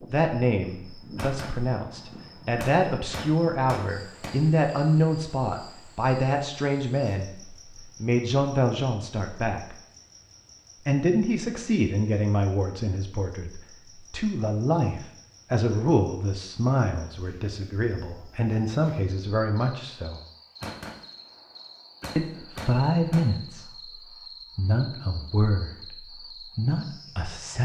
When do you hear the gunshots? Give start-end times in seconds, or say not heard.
1.1-4.3, 20.6-23.2.